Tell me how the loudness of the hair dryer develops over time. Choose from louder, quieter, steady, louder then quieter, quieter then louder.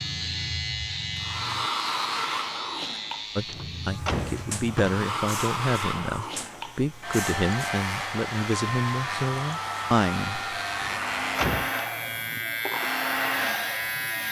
steady.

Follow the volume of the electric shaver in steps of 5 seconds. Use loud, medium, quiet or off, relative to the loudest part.
loud, medium, loud.